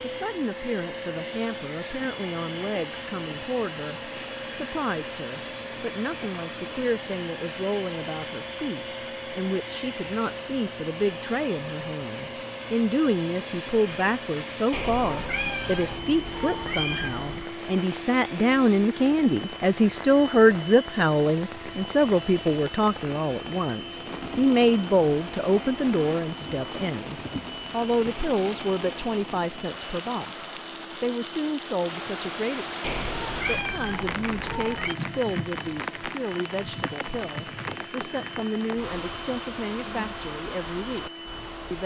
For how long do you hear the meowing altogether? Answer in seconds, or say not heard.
5 s.